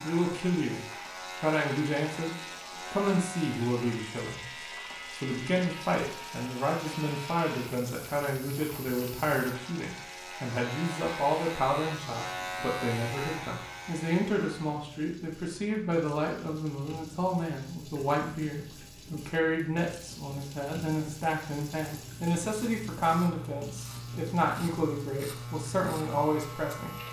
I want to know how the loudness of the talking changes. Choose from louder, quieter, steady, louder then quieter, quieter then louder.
steady.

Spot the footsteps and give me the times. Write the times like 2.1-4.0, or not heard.
not heard.